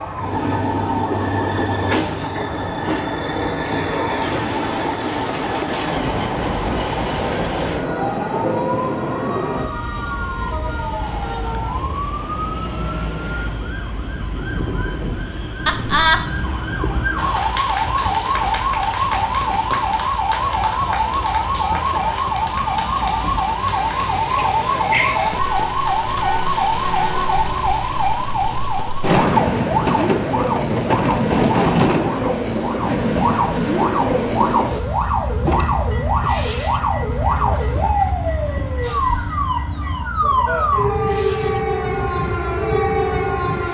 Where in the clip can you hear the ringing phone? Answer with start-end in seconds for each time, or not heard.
not heard.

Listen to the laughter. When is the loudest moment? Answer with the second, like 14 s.
16 s.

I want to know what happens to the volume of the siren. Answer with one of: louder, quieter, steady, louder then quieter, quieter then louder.
louder.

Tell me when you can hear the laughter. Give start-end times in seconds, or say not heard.
15.7-16.2, 24.4-25.2.